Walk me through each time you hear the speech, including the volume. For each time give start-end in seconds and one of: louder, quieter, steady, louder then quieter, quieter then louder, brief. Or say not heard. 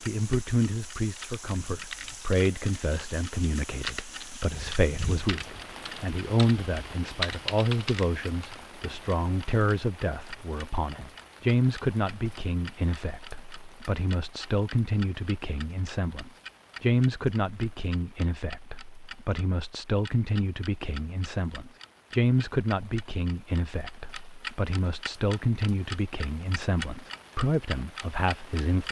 0.0-28.8 steady.